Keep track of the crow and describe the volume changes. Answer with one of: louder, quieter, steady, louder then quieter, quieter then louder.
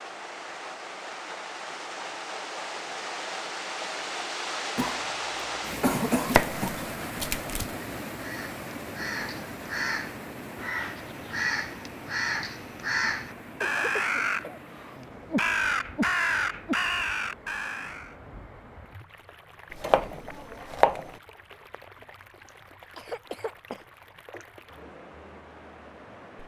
louder.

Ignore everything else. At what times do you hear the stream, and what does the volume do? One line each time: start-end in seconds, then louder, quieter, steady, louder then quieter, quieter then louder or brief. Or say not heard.
0.0-26.4 quieter.